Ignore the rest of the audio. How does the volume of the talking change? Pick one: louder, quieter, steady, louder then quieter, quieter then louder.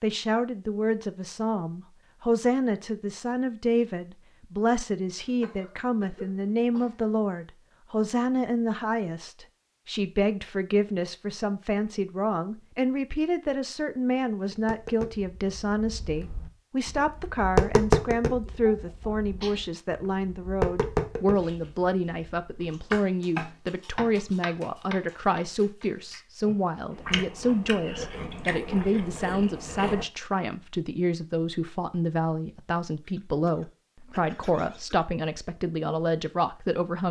steady.